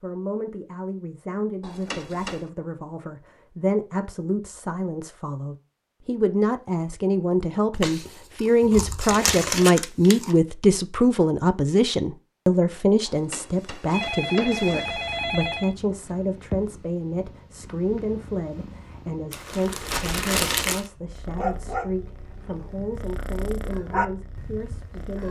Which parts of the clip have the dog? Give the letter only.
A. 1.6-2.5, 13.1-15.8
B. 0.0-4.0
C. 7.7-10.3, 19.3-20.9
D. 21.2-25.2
D.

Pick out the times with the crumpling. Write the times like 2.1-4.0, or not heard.
7.7-10.3, 19.3-20.9.